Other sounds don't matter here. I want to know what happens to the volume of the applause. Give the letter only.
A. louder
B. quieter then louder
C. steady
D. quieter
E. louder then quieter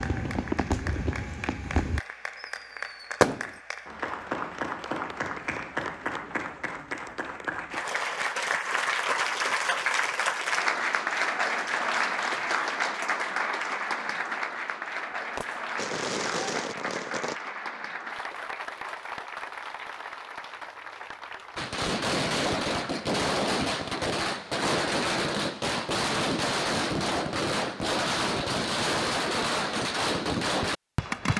E.